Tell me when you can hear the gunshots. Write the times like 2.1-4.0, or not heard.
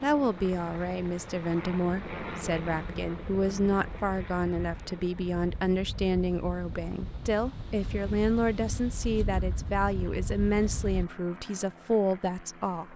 not heard.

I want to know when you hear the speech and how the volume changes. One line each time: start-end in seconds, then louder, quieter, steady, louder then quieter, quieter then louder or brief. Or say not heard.
0.0-12.9 steady.